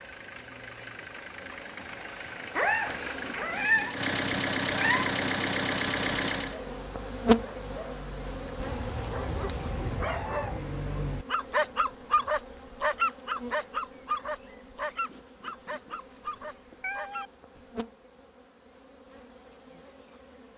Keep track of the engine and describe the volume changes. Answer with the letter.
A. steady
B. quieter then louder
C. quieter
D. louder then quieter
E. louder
E.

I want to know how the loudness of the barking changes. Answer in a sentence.
The volume of the barking goes up, then down.